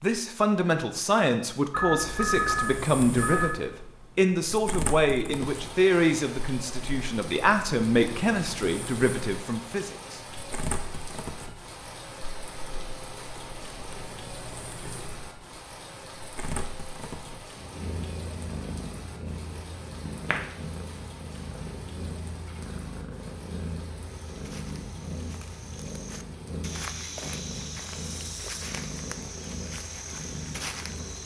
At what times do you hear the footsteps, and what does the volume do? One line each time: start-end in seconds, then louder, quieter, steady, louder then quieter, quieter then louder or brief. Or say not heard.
24.2-31.2 louder.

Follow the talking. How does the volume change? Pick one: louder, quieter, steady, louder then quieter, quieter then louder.
steady.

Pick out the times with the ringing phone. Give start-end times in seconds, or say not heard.
1.7-3.5.